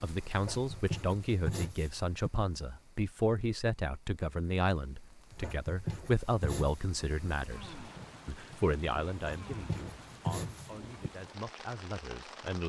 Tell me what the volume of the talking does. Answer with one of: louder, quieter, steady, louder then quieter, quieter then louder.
quieter.